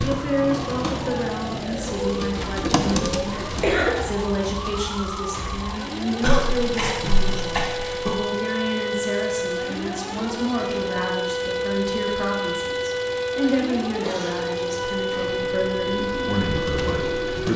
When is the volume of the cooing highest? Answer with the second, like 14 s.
3 s.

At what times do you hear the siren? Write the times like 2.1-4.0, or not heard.
0.0-17.5.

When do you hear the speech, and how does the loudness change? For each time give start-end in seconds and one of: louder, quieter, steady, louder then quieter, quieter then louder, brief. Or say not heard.
0.0-17.5 steady.